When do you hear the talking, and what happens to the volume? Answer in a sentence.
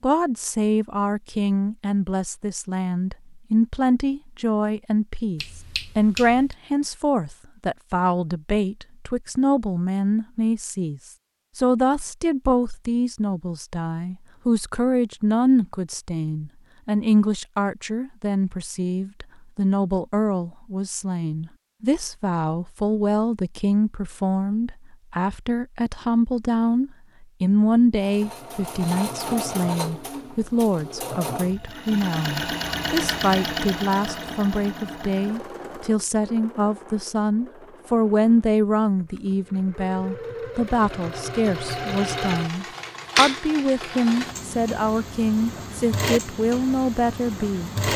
The talking can be heard from 0.0 to 47.8 s, at a steady volume.